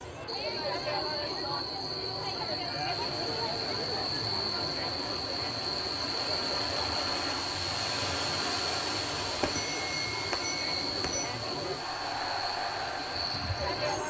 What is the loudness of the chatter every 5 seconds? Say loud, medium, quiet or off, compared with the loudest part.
loud, medium, loud.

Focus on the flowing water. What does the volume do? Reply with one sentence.
The loudness of the flowing water goes up, then down.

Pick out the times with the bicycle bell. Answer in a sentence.
You can hear the bicycle bell from 9.4 to 11.3 s.